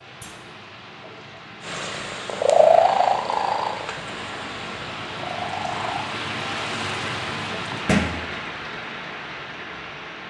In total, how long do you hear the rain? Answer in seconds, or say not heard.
10 s.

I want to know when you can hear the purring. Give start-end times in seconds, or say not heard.
1.6-6.0.